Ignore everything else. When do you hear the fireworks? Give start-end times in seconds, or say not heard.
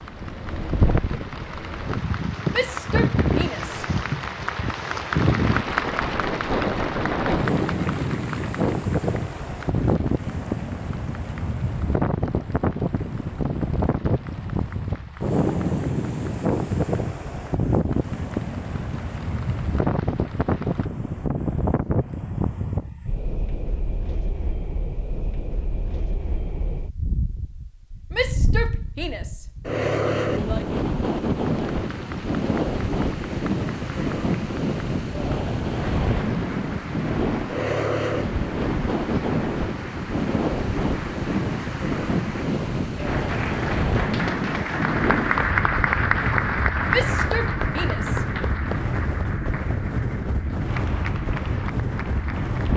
not heard.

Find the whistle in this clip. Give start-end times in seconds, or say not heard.
not heard.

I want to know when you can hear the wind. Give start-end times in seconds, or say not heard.
0.0-52.7.